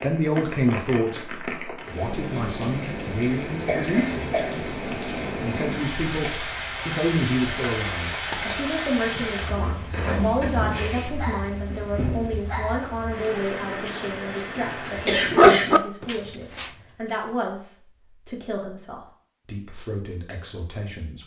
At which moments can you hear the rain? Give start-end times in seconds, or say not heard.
0.0-15.4.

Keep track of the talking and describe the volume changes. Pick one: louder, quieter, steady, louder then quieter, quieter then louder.
quieter.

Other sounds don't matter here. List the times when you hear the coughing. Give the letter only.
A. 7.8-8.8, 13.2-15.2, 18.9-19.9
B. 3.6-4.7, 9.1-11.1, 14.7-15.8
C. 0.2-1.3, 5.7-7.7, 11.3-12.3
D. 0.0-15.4
B.